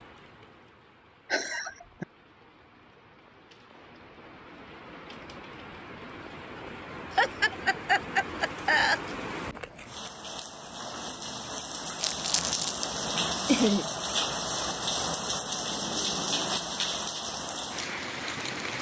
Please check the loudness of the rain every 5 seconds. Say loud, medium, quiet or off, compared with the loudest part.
quiet, medium, loud, loud.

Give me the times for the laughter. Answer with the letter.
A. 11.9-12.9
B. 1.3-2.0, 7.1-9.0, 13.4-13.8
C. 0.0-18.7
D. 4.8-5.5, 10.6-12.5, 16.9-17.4
B.